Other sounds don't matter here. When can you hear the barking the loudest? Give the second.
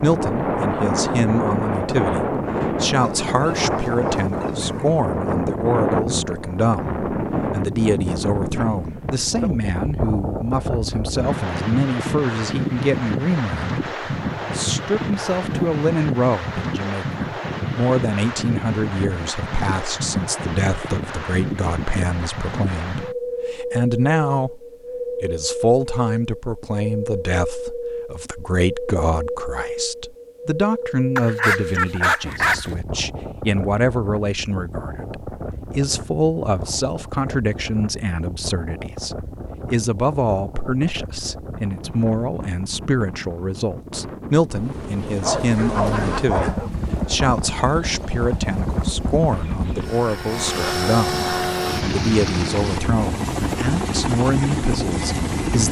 32 s.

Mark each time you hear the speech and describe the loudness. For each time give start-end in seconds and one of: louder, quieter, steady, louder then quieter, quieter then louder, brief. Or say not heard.
0.0-24.6 steady
25.2-55.6 steady.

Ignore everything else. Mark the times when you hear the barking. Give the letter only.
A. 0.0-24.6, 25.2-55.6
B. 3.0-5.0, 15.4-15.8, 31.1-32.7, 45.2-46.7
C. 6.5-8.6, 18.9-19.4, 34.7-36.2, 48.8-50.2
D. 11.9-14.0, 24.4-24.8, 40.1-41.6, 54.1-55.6
B.